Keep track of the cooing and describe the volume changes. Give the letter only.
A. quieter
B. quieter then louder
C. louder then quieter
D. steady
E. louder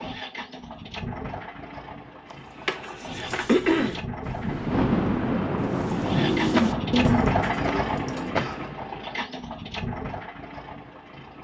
C.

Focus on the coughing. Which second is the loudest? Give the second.
4 s.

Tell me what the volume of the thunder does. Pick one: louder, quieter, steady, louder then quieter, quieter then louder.
quieter.